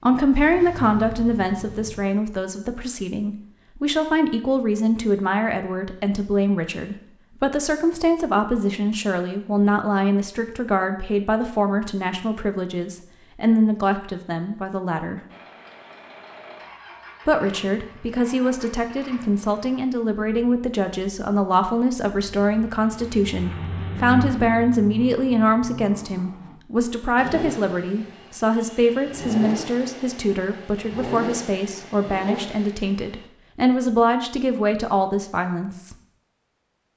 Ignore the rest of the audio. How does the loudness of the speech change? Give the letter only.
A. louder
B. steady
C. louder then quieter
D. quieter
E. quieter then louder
B.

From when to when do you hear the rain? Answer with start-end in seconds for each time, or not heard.
not heard.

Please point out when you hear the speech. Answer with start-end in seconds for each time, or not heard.
0.0-15.2, 17.2-36.0.